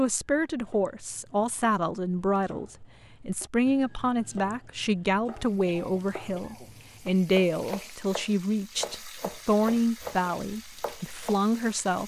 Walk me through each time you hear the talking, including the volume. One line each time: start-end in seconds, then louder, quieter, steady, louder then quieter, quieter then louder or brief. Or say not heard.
0.0-12.0 steady.